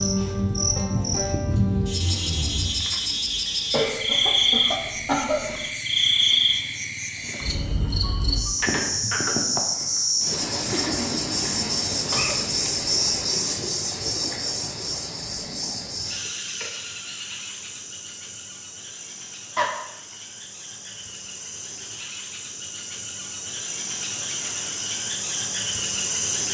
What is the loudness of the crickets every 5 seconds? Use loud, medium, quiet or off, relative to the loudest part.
loud, loud, loud, medium, medium, loud.